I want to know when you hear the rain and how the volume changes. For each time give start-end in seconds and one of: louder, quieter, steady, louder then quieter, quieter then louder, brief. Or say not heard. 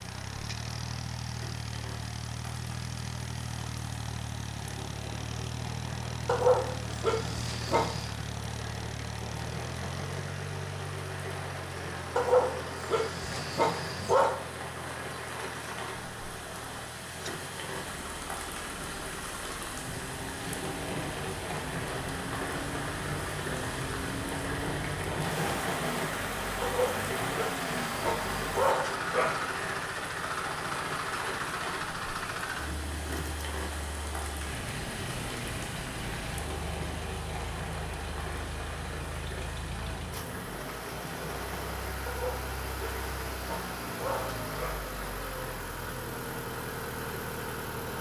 0.0-47.9 louder then quieter.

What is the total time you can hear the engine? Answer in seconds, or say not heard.
48 s.